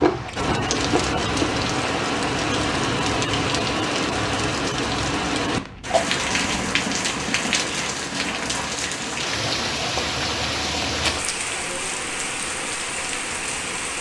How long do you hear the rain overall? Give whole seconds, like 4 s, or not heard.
14 s.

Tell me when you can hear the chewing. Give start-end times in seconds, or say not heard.
0.0-2.0.